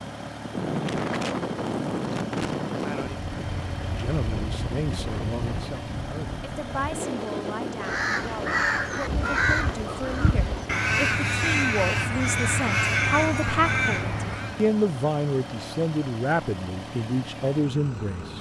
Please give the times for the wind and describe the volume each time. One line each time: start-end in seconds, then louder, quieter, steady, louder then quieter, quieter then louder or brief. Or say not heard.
0.1-10.8 quieter.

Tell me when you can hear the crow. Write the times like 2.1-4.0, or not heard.
7.8-14.7.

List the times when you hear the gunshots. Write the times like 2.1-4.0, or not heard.
not heard.